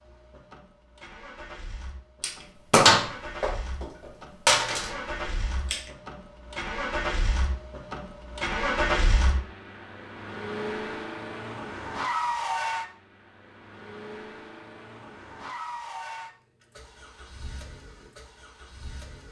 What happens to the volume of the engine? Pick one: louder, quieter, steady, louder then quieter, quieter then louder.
louder then quieter.